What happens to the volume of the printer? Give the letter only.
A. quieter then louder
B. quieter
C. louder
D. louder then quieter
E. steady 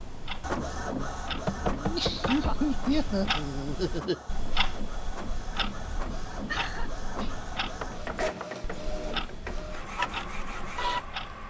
A.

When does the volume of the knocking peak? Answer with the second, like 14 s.
2 s.